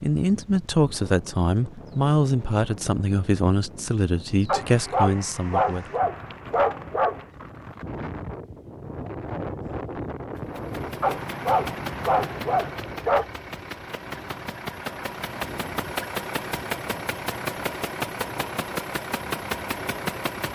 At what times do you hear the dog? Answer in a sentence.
The dog can be heard from 4.5 to 7.2 s and from 11.0 to 13.2 s.